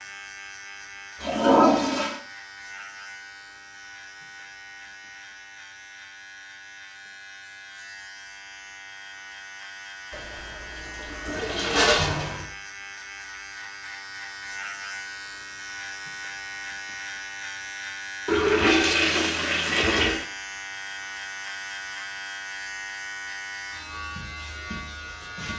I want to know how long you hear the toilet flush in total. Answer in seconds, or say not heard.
5 s.